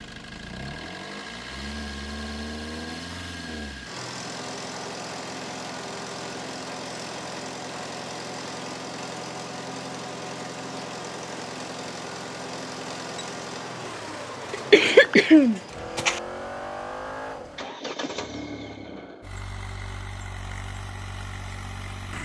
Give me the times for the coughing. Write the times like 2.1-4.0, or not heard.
14.5-16.2.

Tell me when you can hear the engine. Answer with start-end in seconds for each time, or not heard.
0.0-22.1.